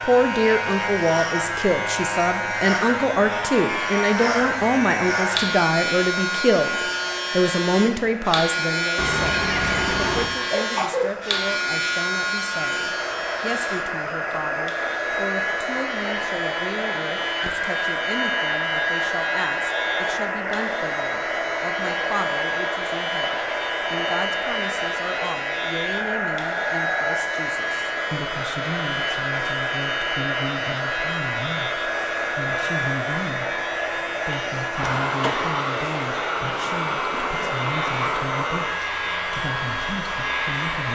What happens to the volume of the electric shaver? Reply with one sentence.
The loudness of the electric shaver goes down.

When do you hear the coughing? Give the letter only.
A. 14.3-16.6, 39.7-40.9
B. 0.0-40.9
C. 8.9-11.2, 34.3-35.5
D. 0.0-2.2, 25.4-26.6
C.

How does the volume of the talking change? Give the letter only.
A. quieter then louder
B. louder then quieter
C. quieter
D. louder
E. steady
C.